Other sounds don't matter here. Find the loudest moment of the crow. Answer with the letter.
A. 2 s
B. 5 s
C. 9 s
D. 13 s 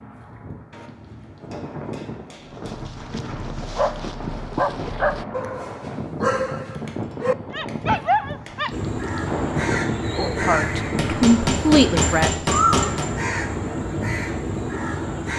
D.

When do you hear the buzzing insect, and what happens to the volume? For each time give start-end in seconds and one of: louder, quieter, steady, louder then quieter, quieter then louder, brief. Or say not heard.
not heard.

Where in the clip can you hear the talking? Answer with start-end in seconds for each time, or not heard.
10.2-12.3.